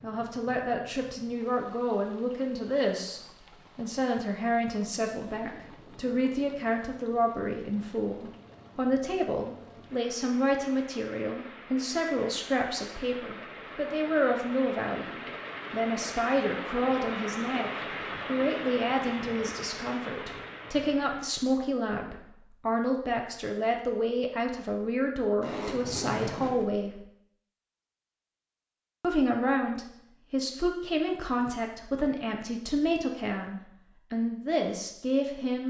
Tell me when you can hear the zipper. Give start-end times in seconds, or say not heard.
25.4-26.6.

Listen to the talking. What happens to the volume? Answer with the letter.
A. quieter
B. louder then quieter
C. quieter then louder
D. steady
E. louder
D.